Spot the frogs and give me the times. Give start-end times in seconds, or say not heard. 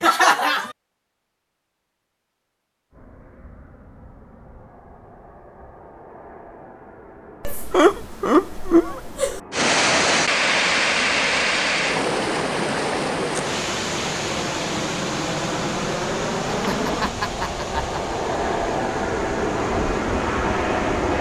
not heard.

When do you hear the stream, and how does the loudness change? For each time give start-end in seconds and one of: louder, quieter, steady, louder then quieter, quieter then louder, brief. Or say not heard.
9.5-21.1 quieter.